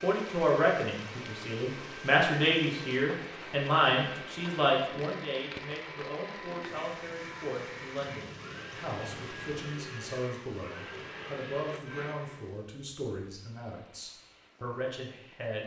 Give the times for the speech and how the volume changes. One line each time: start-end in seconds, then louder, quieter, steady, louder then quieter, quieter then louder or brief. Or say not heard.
0.0-15.6 quieter.